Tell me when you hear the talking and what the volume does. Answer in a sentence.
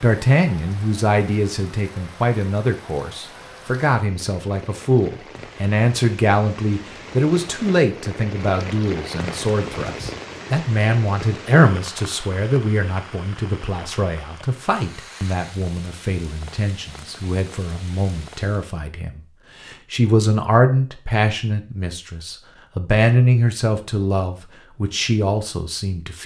You can hear the talking from 0.0 to 26.2 s, at a steady volume.